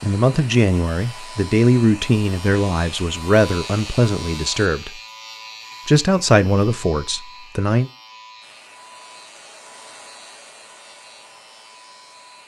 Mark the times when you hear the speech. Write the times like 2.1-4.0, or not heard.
0.0-5.0, 5.8-7.9.